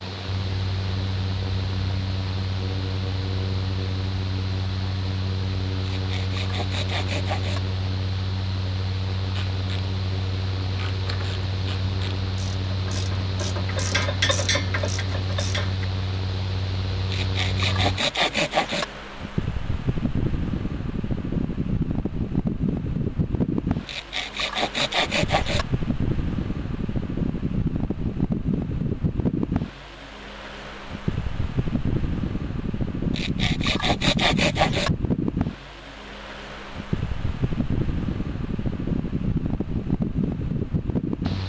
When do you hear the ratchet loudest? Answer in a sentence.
The volume of the ratchet peaks at 14 seconds.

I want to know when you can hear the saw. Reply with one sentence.
The saw can be heard from 5.8 to 7.6 s, from 17.1 to 18.9 s, from 23.9 to 25.6 s and from 33.1 to 34.9 s.